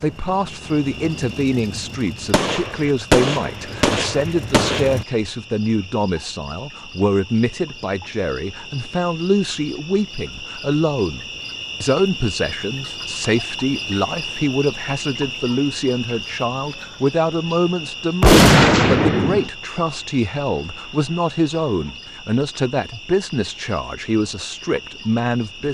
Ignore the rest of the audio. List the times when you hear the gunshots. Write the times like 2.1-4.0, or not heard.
2.3-5.0, 18.2-19.5.